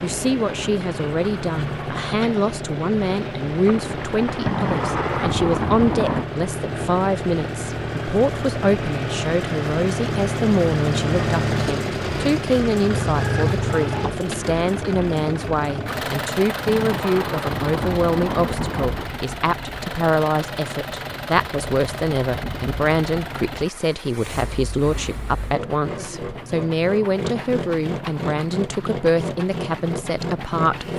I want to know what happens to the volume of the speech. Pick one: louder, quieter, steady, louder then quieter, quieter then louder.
steady.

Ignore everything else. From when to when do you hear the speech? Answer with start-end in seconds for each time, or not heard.
0.0-30.9.